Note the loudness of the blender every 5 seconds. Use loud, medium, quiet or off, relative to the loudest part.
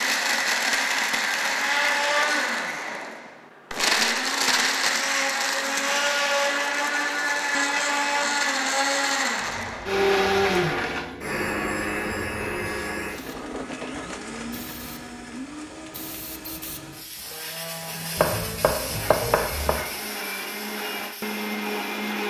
loud, loud, loud, quiet, medium.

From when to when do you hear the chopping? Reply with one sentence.
You can hear the chopping from 18.1 to 19.8 s.